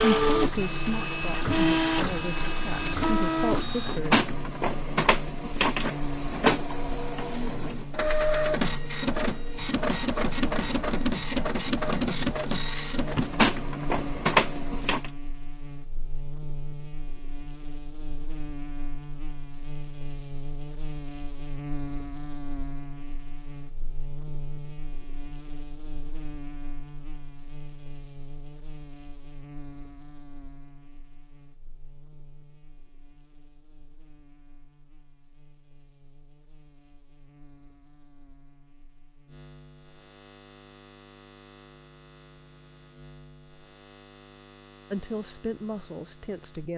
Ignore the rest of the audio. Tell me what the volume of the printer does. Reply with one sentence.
The loudness of the printer stays about the same.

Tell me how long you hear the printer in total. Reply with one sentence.
You can hear the printer for 15 seconds altogether.